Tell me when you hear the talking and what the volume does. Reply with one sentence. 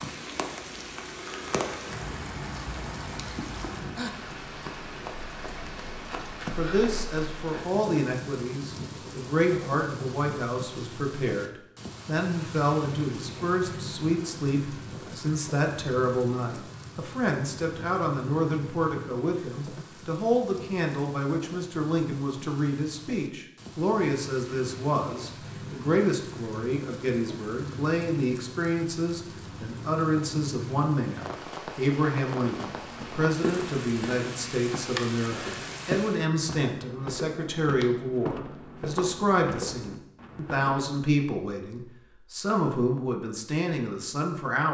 You can hear the talking from 6.5 to 44.6 s, at a steady volume.